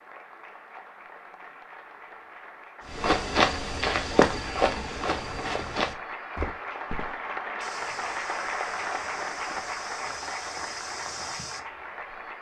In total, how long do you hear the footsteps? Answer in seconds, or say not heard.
9 s.